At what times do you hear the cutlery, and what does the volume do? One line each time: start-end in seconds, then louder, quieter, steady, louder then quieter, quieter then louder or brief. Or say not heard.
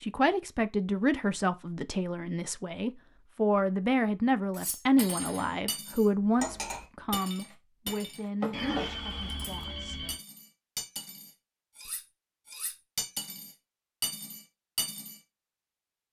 4.5-15.2 quieter then louder.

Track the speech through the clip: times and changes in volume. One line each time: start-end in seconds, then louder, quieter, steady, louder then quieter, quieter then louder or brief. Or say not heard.
0.0-10.1 quieter.